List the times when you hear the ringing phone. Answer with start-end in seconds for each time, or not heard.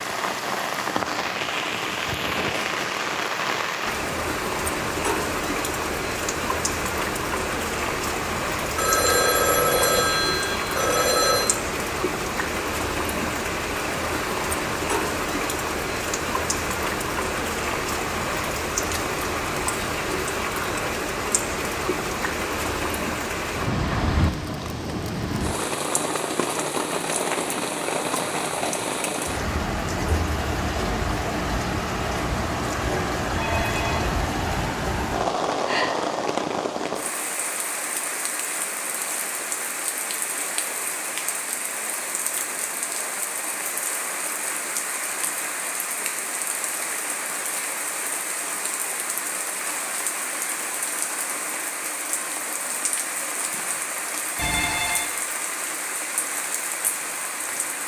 8.8-11.5, 33.4-34.0, 54.4-55.1.